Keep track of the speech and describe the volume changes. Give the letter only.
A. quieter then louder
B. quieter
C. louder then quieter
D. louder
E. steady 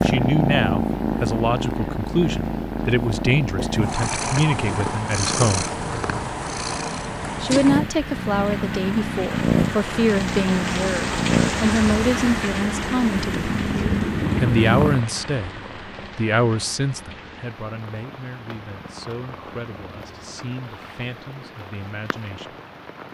B.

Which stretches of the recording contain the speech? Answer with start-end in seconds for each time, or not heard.
0.0-5.7, 7.4-13.5, 14.4-22.6.